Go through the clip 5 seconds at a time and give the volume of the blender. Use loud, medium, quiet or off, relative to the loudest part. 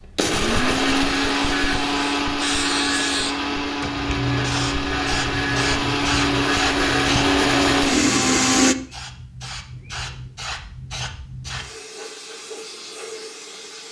loud, loud, off.